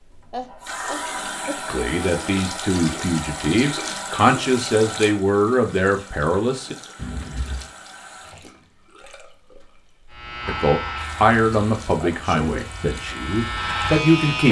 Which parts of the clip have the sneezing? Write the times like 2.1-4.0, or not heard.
0.3-1.6, 7.0-7.7, 12.0-12.7.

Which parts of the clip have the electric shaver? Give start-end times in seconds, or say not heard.
10.1-14.4.